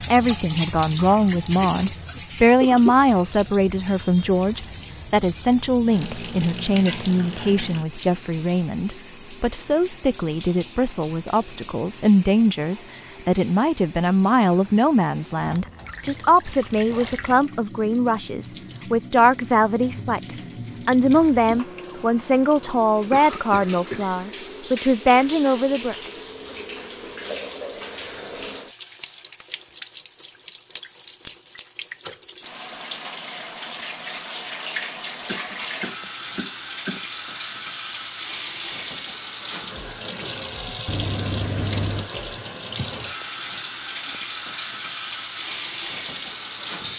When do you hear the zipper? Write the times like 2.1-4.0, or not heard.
16.6-17.4, 40.9-42.1.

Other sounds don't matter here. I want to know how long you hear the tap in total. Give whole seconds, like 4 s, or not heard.
47 s.